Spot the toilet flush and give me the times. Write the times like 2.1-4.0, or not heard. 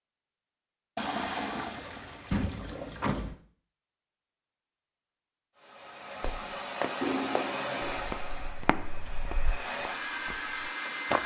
0.9-3.3, 7.0-8.6.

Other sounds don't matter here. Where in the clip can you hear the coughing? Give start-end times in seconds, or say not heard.
not heard.